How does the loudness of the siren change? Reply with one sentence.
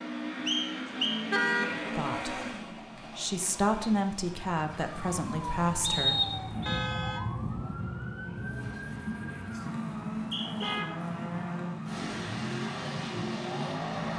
The loudness of the siren stays about the same.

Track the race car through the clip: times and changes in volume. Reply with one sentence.
You can hear the race car from 0.0 to 14.1 s, getting quieter then louder.